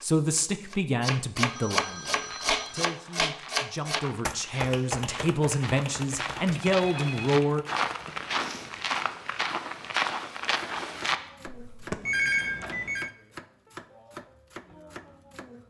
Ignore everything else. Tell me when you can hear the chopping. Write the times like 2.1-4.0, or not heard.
0.0-8.2, 10.4-15.6.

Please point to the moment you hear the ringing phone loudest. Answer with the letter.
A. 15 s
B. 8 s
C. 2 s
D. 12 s
D.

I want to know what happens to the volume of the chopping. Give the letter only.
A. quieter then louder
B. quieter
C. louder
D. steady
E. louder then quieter
B.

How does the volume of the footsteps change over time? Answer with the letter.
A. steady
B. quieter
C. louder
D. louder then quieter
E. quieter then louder
C.